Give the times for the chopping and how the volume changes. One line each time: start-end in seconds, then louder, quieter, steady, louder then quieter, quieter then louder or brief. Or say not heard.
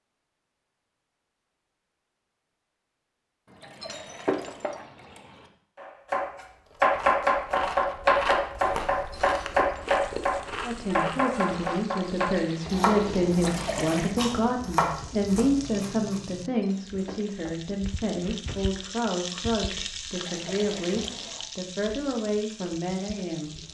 5.8-16.2 quieter.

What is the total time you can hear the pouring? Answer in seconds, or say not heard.
4 s.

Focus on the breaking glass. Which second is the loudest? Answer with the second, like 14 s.
4 s.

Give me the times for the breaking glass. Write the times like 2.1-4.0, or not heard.
3.8-4.8, 9.1-10.0, 16.6-17.6.